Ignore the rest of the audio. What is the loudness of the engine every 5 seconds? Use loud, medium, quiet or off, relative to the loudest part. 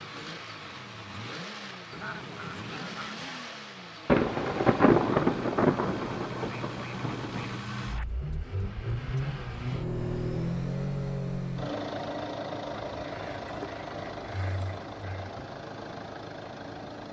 medium, loud, loud, medium.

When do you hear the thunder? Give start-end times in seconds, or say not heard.
4.0-7.6.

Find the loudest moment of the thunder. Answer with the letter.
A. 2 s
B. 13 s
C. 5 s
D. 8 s
C.